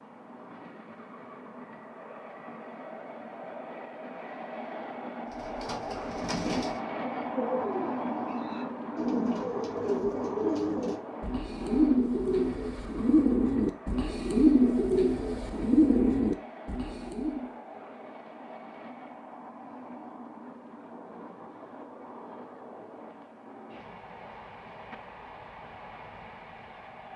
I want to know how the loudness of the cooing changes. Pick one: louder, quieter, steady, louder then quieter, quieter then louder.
louder.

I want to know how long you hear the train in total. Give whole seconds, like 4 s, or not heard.
27 s.